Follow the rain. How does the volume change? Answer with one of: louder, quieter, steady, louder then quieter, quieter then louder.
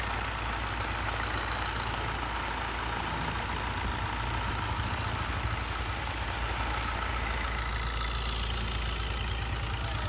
steady.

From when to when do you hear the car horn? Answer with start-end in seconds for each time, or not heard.
not heard.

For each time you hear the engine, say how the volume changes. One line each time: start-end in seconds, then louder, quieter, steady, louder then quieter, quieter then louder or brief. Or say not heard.
0.0-10.0 steady.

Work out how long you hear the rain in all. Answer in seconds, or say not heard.
8 s.